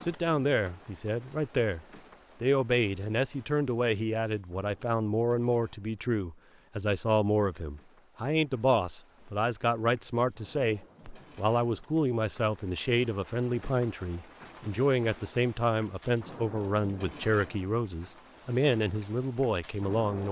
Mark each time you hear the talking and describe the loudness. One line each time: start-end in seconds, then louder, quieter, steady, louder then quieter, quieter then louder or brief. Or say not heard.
0.0-20.2 steady.